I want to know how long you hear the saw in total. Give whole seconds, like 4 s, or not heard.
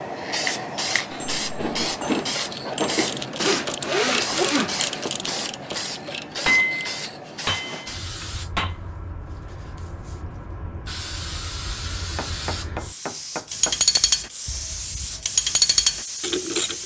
2 s.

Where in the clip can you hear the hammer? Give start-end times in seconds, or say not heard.
1.1-3.0, 6.5-8.8, 12.2-14.0.